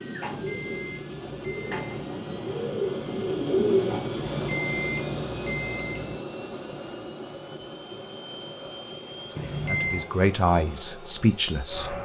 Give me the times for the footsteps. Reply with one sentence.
The footsteps can't be heard in this clip.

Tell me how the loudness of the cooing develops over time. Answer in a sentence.
The volume of the cooing goes up.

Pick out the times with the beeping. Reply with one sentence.
You can hear the beeping from 0.1 to 2.0 s, from 4.2 to 6.2 s and from 9.3 to 10.1 s.